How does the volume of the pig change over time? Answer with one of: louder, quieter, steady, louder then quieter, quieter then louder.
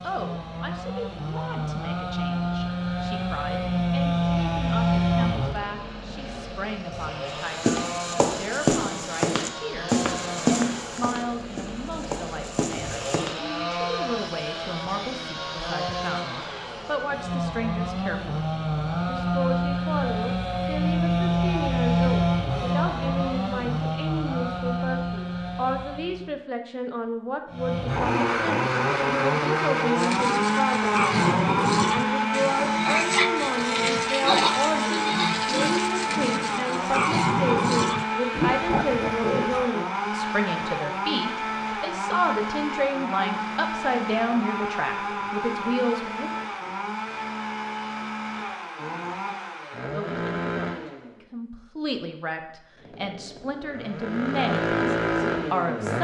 steady.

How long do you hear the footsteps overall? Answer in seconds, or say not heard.
6 s.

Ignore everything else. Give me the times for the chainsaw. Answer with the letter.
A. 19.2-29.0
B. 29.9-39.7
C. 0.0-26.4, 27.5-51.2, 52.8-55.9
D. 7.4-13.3
C.